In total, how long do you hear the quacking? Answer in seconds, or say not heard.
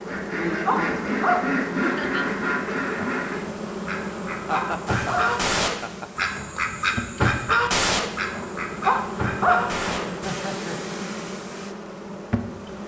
10 s.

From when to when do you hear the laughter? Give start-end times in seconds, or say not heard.
1.8-2.2, 4.5-6.3, 10.2-10.9.